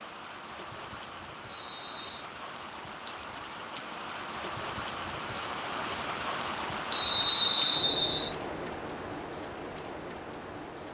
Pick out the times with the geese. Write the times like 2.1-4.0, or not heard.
not heard.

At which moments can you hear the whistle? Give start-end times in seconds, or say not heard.
1.5-2.2, 6.9-8.3.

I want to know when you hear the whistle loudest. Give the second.
7 s.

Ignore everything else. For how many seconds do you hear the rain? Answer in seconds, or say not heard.
11 s.